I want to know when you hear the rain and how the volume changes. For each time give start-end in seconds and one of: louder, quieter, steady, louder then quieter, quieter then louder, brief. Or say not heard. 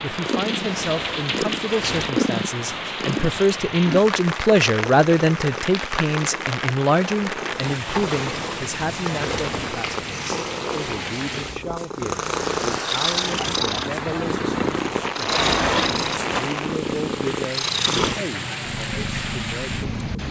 0.0-20.2 steady.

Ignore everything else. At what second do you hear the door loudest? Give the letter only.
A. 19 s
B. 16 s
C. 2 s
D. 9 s
B.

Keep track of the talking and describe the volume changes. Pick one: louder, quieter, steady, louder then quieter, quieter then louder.
louder then quieter.